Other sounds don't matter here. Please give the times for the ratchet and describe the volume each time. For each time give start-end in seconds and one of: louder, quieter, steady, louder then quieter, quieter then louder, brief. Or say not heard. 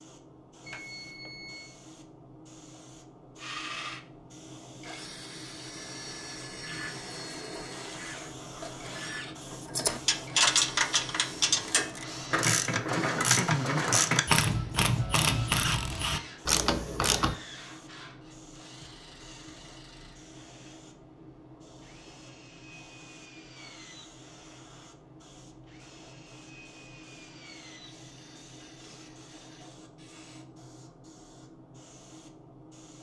6.5-17.4 louder.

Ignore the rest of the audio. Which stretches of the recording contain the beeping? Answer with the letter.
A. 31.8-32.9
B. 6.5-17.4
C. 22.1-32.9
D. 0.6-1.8
D.